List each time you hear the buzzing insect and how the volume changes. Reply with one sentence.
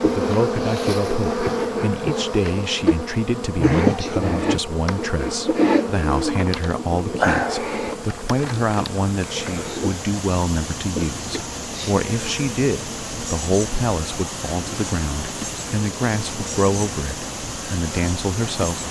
You can hear the buzzing insect from 0.0 to 18.8 s, getting quieter.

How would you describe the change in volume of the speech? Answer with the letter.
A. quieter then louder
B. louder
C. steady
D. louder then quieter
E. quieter
C.